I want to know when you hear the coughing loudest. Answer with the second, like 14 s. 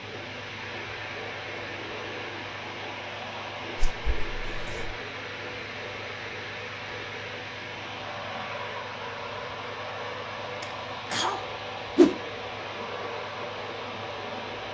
11 s.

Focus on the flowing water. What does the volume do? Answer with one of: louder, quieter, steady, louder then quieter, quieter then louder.
steady.